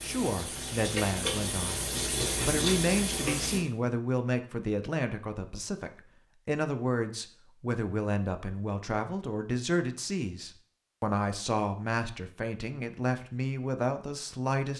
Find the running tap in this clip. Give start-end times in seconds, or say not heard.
0.0-3.6.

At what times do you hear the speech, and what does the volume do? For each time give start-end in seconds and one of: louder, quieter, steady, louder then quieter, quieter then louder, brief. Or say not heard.
0.0-14.7 steady.